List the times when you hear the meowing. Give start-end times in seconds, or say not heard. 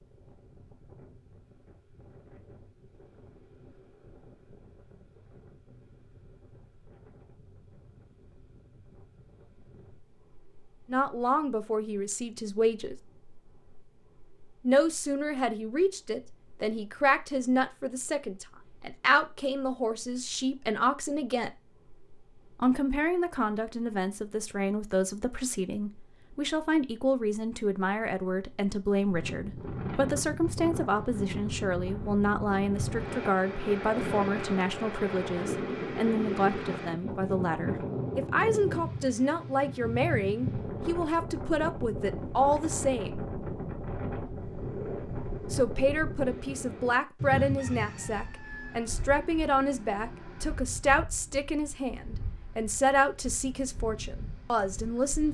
not heard.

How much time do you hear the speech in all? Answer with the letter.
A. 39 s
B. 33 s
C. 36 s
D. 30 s
A.